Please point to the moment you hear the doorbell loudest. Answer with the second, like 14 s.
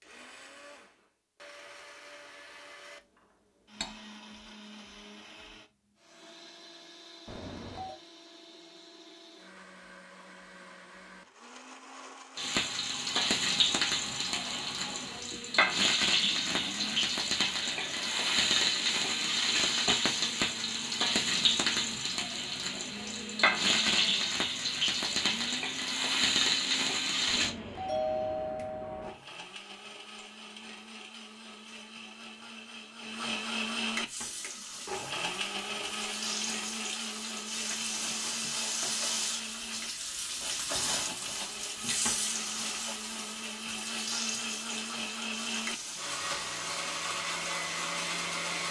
28 s.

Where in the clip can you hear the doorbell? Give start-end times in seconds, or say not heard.
7.2-8.0, 27.2-29.1.